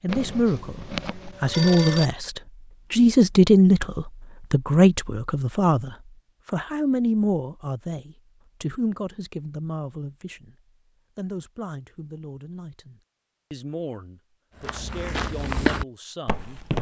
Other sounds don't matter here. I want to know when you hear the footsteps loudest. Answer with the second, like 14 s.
16 s.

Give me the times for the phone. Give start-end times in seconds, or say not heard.
0.1-2.1.